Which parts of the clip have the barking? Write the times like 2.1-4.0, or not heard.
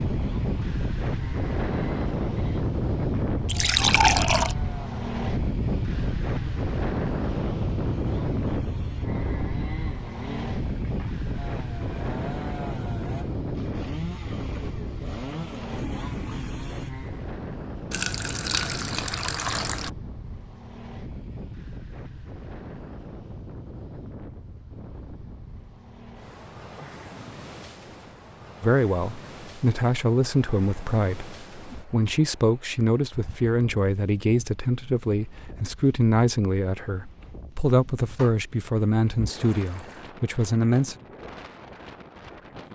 not heard.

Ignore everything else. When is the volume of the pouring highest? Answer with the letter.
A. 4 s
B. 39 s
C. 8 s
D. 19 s
A.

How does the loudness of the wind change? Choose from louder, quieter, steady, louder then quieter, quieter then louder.
quieter.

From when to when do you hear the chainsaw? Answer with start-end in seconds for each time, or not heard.
0.0-17.2.